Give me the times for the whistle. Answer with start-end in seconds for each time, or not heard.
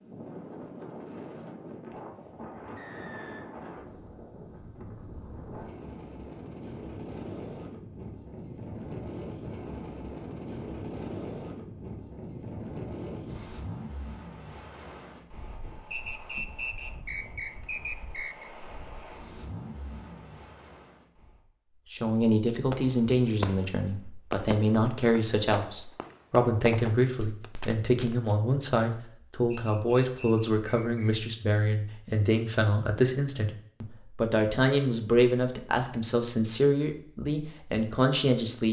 2.8-3.5, 15.9-18.5, 29.5-31.1.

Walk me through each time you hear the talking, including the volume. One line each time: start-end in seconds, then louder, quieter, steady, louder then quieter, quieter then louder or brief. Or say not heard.
21.9-38.6 steady.